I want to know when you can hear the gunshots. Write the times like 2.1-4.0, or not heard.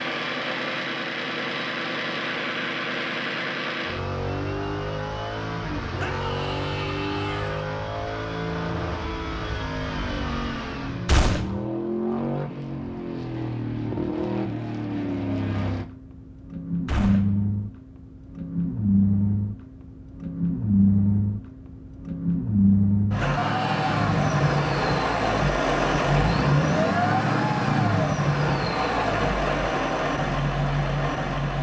11.1-11.7, 16.9-17.4.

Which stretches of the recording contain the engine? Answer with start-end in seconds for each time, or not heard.
0.0-31.5.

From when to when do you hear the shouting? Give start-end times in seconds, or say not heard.
6.0-7.7, 23.1-24.1.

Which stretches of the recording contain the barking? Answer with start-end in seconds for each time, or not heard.
not heard.